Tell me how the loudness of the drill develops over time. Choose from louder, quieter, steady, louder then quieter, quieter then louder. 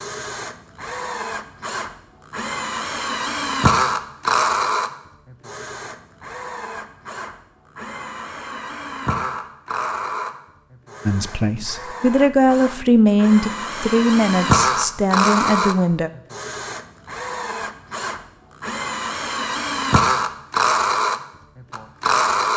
quieter then louder.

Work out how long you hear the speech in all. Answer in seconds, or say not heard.
5 s.